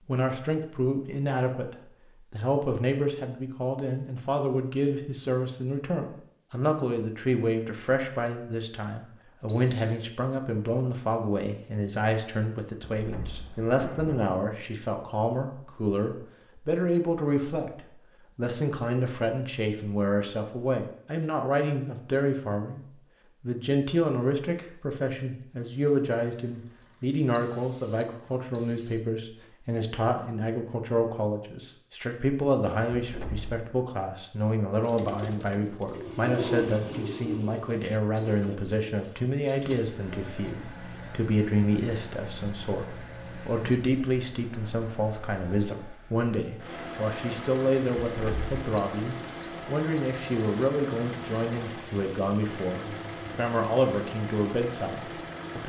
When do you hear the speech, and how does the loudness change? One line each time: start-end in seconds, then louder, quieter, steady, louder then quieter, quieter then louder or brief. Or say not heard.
0.1-55.6 steady.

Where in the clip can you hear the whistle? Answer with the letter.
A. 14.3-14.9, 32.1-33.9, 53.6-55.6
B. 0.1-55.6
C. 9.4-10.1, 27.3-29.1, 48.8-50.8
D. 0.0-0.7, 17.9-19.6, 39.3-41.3
C.